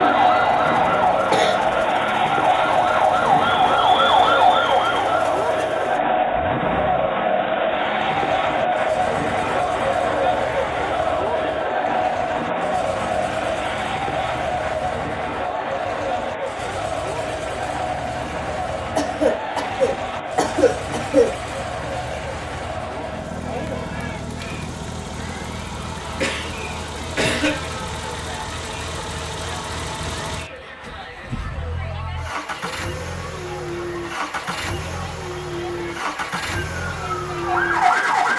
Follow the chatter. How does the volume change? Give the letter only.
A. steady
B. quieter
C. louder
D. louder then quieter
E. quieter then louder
B.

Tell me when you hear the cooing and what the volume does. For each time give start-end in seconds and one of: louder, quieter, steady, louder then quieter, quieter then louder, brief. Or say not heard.
not heard.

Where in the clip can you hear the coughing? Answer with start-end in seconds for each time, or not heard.
0.6-1.8, 18.9-21.4, 26.2-27.8.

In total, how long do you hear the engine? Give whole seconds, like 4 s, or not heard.
38 s.